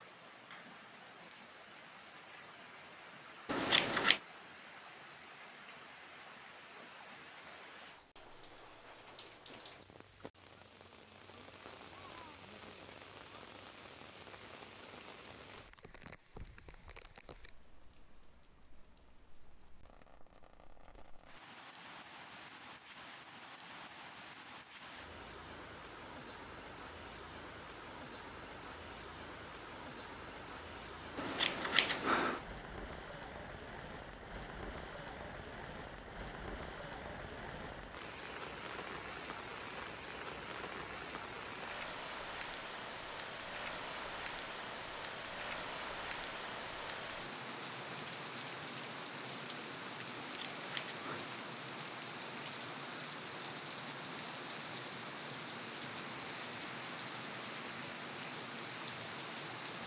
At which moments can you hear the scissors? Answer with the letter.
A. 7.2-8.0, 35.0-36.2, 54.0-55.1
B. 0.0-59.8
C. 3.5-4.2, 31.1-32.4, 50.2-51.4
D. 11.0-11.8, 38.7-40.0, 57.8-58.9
C.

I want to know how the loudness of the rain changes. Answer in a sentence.
The volume of the rain goes up.